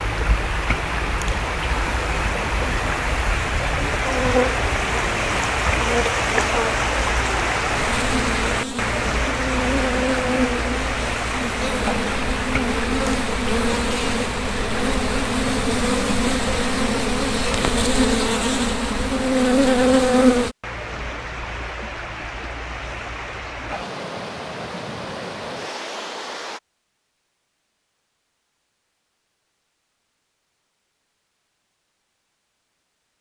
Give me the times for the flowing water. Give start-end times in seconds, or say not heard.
0.0-26.6.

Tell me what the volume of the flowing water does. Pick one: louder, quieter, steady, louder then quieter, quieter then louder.
quieter.